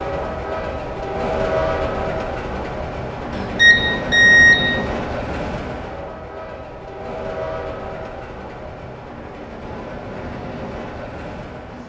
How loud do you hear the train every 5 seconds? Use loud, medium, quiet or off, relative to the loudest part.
loud, medium, medium.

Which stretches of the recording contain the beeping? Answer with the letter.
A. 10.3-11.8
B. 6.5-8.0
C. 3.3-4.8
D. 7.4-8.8
C.